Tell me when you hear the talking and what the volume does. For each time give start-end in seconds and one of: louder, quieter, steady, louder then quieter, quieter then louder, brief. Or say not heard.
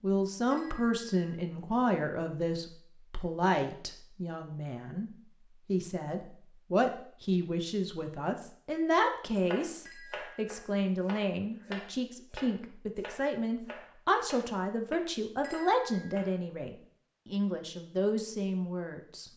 0.0-19.2 steady.